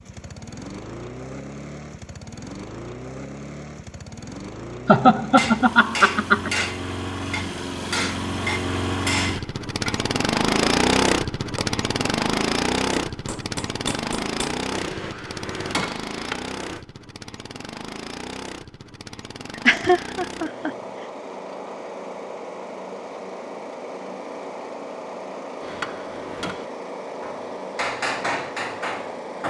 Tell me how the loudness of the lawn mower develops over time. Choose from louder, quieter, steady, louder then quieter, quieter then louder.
louder then quieter.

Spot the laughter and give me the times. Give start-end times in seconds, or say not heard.
4.8-6.7, 19.6-20.7.